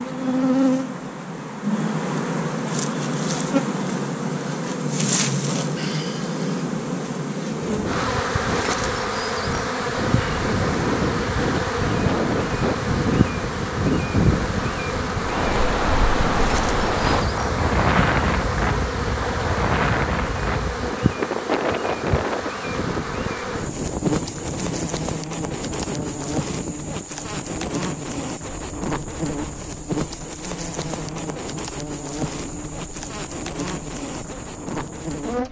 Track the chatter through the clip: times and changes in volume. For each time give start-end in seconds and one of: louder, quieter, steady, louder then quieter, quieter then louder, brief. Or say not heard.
not heard.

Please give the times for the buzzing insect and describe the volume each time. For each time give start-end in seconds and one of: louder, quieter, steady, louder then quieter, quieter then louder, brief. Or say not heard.
0.0-35.4 quieter.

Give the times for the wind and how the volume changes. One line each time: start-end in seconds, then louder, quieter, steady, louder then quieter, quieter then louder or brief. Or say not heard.
7.5-35.2 quieter.